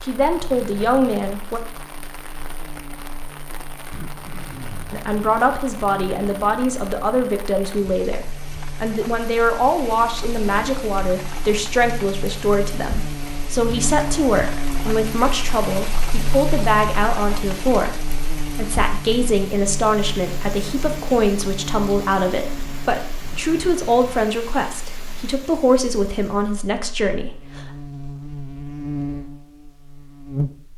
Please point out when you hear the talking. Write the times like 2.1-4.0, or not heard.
0.0-1.6, 4.9-27.7.